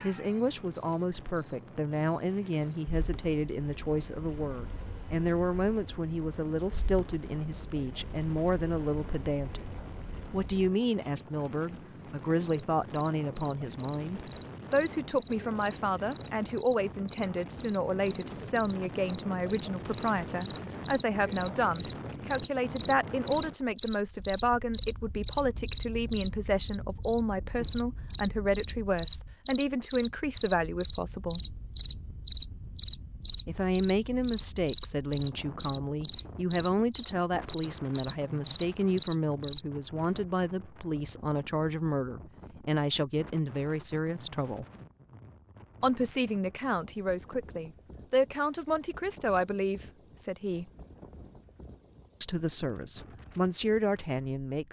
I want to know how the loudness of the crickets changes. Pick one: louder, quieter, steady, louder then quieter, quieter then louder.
louder.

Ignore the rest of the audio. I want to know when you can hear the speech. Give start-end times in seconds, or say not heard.
0.0-9.7, 10.3-31.4, 33.5-44.6, 45.8-50.6, 52.2-54.6.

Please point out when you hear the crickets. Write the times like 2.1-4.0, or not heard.
0.0-39.6.